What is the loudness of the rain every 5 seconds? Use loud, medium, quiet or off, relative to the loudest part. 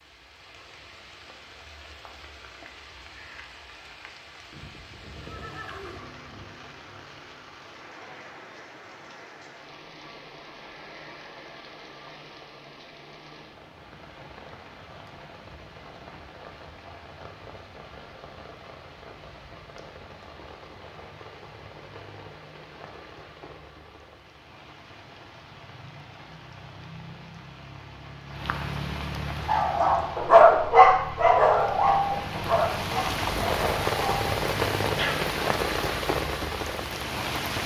quiet, quiet, quiet, quiet, quiet, medium, loud, loud.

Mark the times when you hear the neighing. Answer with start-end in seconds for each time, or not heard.
4.5-6.5.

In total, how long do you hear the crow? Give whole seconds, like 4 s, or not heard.
not heard.